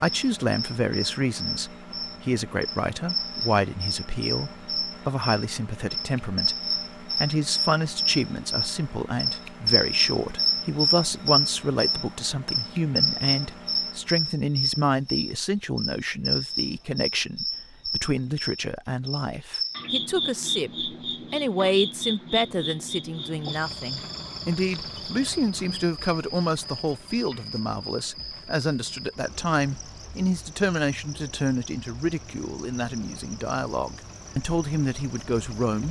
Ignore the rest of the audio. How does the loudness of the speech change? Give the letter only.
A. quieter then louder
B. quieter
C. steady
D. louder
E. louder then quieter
C.